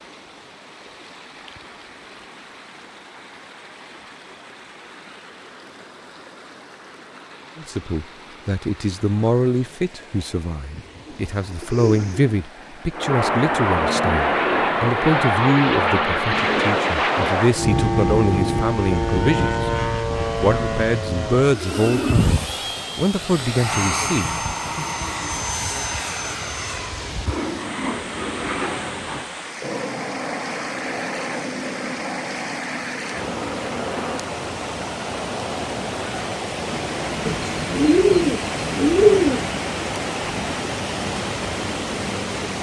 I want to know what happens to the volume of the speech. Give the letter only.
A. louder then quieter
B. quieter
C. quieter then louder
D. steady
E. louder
D.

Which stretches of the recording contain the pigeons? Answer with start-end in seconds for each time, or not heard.
11.1-12.3, 37.2-39.5.